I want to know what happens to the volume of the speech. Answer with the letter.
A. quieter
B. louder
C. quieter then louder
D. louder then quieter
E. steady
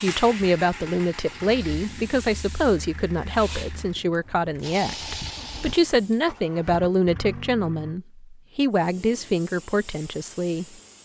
E.